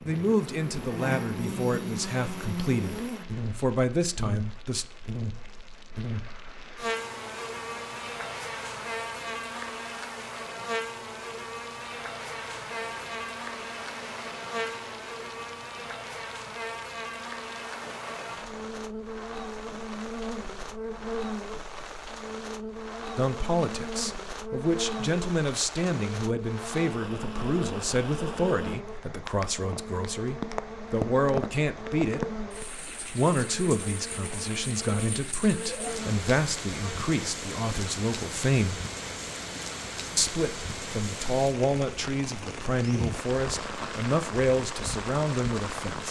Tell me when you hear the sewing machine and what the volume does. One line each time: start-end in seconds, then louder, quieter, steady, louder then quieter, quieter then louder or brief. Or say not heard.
not heard.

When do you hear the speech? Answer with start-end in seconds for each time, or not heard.
0.0-4.8, 23.1-32.3, 33.1-38.8, 40.1-46.0.